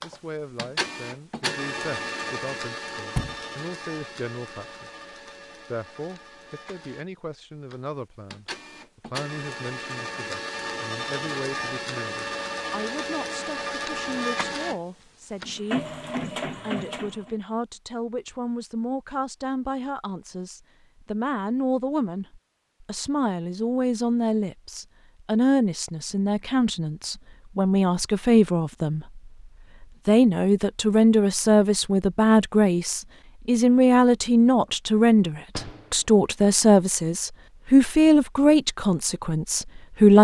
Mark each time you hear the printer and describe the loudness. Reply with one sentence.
You can hear the printer from 0.0 to 17.4 s, getting quieter then louder.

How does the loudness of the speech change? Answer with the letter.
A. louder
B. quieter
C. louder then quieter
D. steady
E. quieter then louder
A.